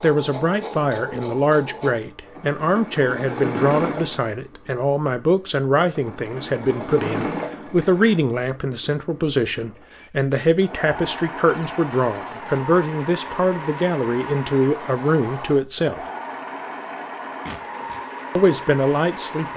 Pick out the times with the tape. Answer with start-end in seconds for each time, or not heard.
17.4-18.0.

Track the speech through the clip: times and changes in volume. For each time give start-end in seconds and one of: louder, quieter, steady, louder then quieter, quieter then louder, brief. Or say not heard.
0.0-16.0 steady
18.4-19.5 brief.